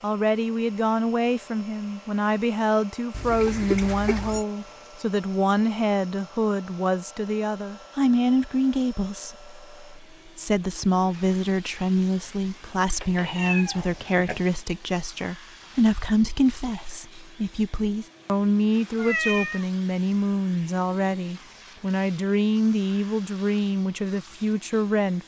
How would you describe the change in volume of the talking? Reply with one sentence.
The volume of the talking stays about the same.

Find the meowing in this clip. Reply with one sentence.
You can hear the meowing from 3.1 to 4.5 s, from 13.0 to 14.4 s and from 18.9 to 19.6 s.